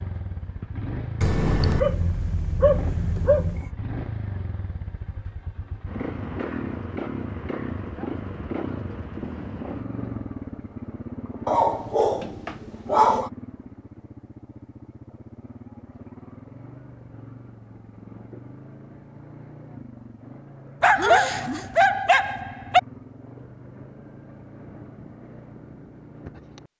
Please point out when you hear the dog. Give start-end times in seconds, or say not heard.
1.2-3.7, 11.4-13.3, 20.8-22.8.